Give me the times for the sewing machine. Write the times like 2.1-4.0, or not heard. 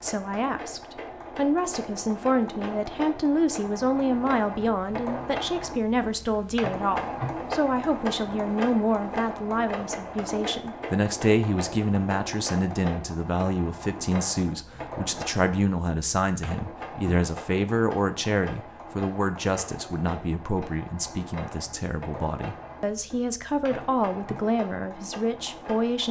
0.0-26.0.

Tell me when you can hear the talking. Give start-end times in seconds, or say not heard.
0.0-26.0.